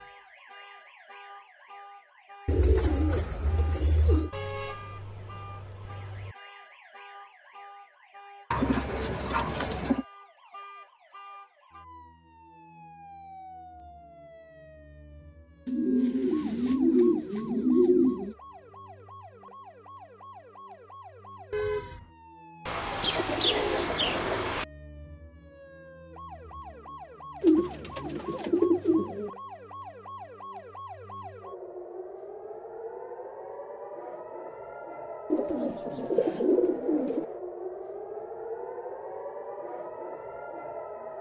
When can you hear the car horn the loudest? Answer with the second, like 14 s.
22 s.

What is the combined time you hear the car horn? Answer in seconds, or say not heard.
3 s.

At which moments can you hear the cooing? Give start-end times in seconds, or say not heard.
2.5-4.3, 8.5-10.1, 15.7-18.4, 22.6-24.6, 27.4-29.3, 35.3-37.2.